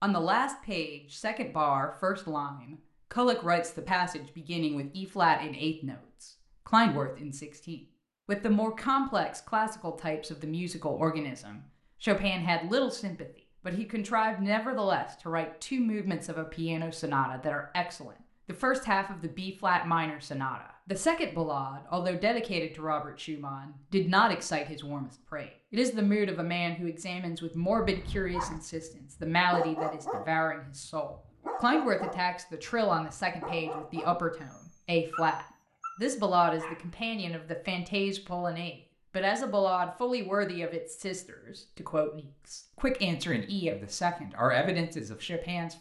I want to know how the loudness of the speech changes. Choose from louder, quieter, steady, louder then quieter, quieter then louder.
steady.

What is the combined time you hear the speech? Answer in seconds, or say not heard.
46 s.